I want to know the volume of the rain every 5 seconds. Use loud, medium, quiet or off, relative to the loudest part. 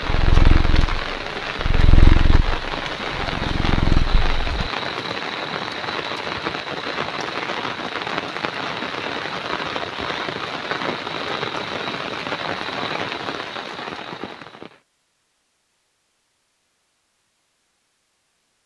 loud, loud, loud, off.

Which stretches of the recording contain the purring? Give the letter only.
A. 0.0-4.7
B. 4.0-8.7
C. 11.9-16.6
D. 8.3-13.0
A.